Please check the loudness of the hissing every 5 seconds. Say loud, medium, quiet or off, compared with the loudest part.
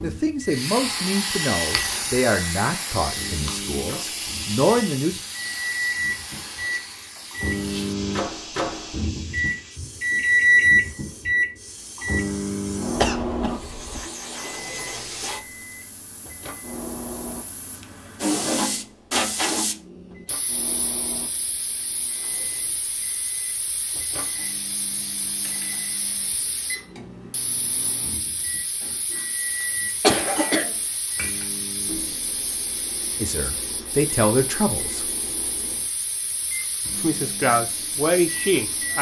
loud, medium, medium, loud, medium, medium, medium, medium.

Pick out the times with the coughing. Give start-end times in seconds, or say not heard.
12.9-14.1, 28.8-31.4.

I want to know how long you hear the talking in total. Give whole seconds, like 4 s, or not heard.
9 s.